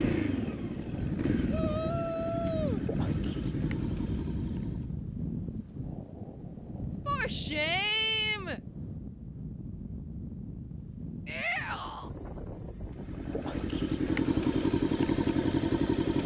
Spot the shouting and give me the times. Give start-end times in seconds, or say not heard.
1.4-3.3, 7.0-8.6, 11.2-12.1.